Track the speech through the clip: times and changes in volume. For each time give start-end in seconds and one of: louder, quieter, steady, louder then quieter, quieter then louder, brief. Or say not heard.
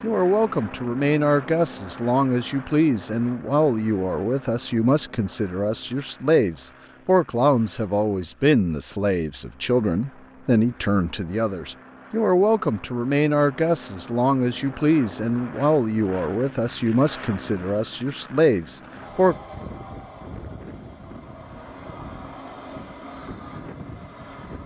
0.0-19.4 steady.